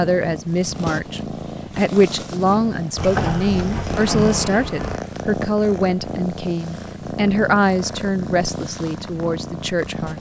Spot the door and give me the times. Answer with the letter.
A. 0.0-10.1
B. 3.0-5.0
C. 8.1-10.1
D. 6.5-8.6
B.